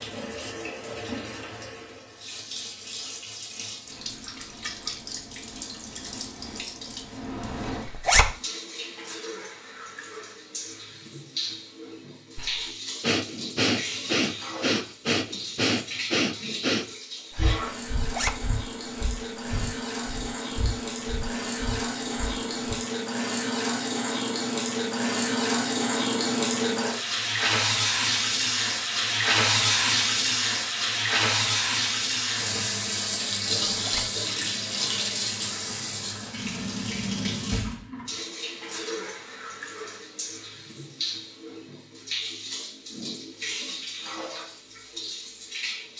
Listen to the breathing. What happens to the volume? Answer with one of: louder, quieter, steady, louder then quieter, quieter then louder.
quieter.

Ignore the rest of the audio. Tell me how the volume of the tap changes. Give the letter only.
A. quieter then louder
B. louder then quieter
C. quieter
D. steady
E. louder
B.